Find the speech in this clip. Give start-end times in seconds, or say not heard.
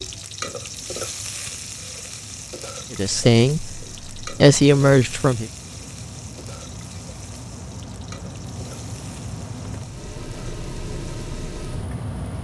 2.9-5.5.